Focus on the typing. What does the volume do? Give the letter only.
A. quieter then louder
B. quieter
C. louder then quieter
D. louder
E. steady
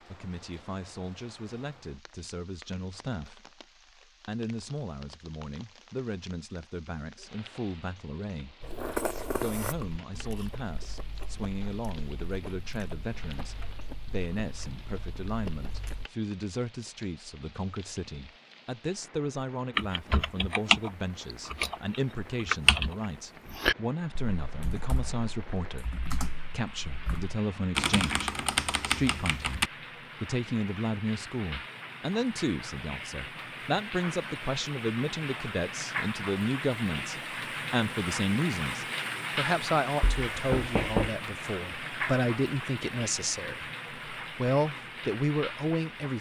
A.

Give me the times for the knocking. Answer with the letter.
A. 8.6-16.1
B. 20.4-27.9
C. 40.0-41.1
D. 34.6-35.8
C.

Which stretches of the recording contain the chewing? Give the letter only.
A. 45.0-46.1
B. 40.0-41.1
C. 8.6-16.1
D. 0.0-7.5
C.